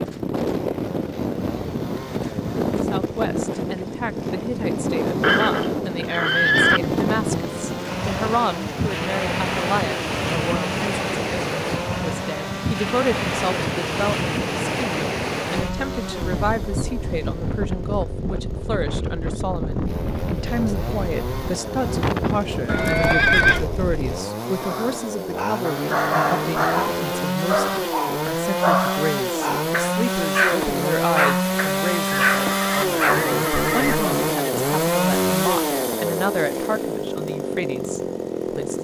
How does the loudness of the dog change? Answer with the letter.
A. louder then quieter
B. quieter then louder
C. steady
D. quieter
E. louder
C.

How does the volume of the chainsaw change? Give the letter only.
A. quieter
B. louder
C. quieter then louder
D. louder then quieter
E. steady
B.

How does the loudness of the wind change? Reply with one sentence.
The volume of the wind stays about the same.